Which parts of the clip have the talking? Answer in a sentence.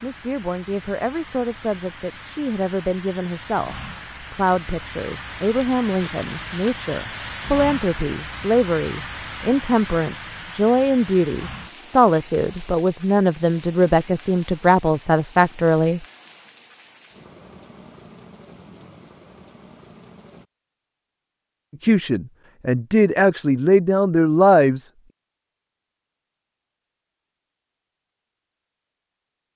You can hear the talking from 0.0 to 16.1 s and from 21.8 to 24.9 s.